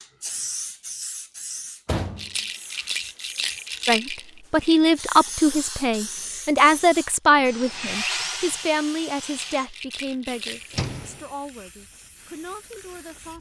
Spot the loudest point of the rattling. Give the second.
4 s.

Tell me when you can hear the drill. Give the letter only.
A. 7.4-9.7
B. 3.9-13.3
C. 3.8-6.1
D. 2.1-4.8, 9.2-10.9
A.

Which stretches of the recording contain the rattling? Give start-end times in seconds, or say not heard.
2.1-4.8, 9.2-10.9.